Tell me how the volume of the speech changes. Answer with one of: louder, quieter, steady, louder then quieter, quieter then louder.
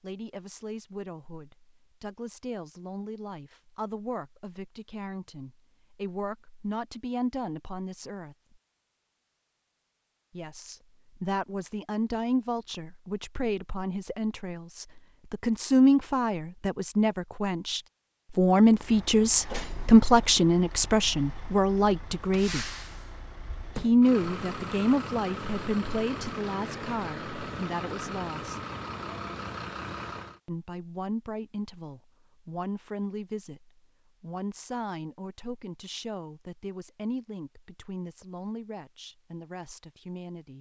louder then quieter.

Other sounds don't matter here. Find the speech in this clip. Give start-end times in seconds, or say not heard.
0.0-8.3, 10.3-22.7, 23.8-28.6, 30.4-40.5.